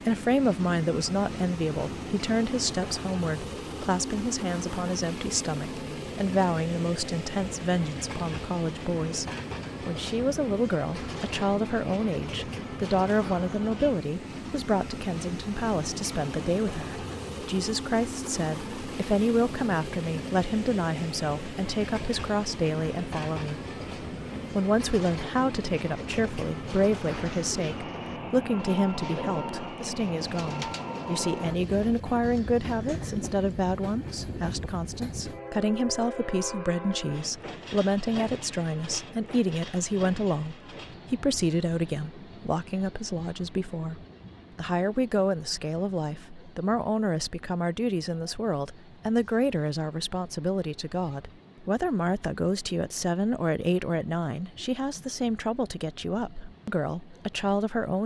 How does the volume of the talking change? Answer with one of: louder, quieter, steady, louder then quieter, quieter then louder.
steady.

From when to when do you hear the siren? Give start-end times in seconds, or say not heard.
not heard.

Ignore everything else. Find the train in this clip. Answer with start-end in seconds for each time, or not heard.
0.0-58.0.